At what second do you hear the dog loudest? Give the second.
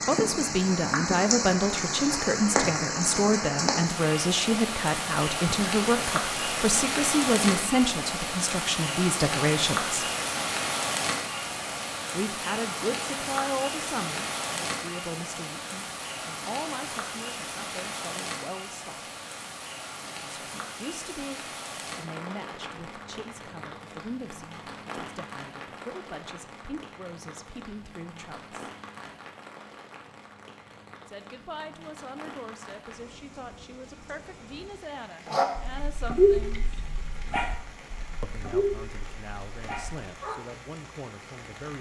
36 s.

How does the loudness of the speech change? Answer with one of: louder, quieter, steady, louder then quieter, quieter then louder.
quieter.